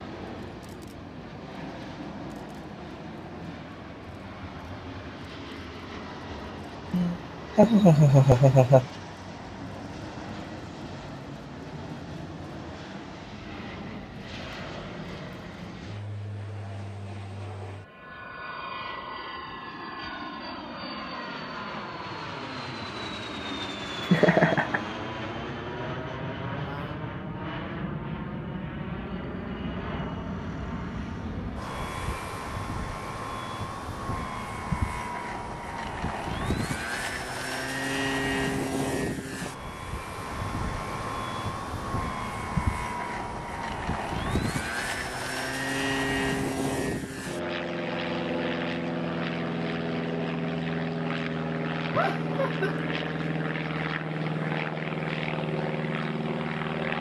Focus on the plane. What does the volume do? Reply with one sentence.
The volume of the plane goes up.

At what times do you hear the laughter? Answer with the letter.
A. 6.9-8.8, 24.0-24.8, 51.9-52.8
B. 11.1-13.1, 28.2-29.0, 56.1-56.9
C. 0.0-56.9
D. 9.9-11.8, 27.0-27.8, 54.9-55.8
A.